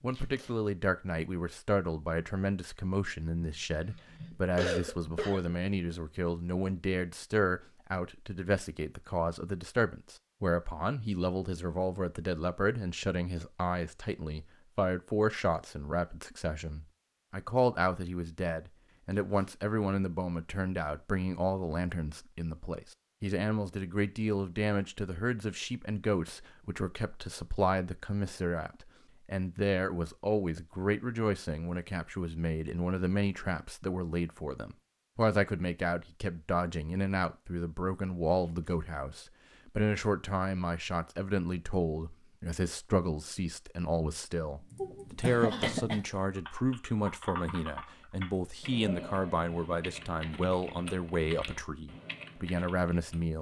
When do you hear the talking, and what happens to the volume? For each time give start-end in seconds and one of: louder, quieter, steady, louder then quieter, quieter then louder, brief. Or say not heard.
0.0-53.3 steady.